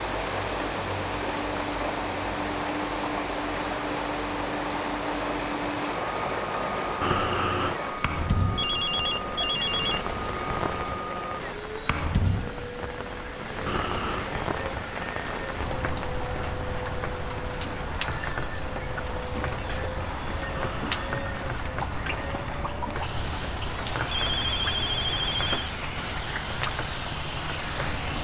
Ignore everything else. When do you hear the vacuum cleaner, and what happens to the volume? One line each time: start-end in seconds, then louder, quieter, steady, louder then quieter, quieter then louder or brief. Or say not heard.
0.0-28.2 steady.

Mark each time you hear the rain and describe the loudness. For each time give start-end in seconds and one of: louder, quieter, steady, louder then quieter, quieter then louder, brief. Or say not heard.
0.0-28.2 steady.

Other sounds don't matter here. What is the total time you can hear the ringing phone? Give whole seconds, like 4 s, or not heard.
3 s.